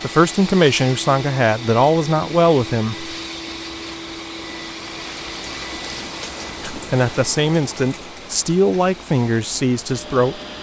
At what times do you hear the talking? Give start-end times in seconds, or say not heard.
0.0-3.1, 6.7-10.4.